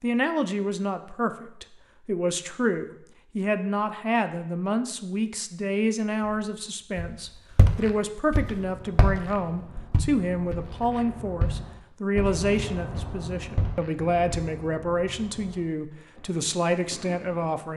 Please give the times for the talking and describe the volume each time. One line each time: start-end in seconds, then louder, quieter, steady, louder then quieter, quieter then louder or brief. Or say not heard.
0.0-17.7 steady.